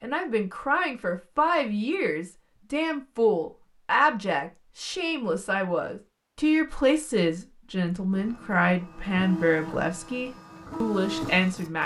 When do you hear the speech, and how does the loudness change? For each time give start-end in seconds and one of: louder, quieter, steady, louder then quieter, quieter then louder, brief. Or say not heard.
0.0-11.8 steady.